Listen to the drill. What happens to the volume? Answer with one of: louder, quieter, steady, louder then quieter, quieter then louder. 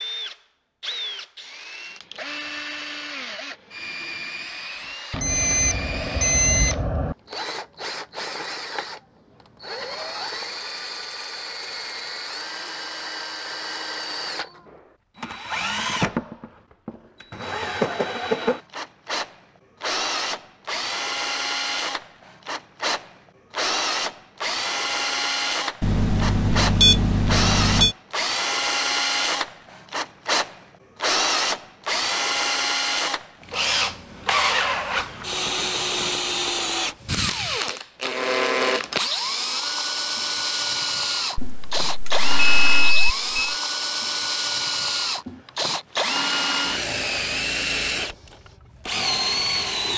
louder.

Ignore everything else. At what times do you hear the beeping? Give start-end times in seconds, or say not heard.
5.1-7.2, 25.8-27.9, 41.4-43.5.